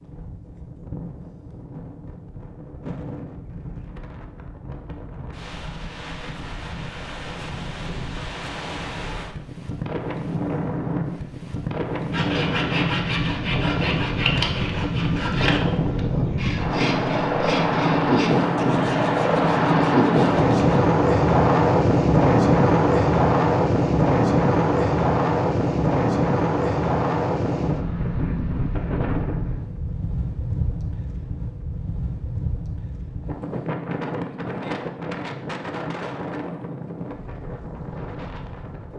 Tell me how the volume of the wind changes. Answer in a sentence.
The loudness of the wind goes up, then down.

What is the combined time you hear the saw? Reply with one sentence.
You can hear the saw for 9 seconds altogether.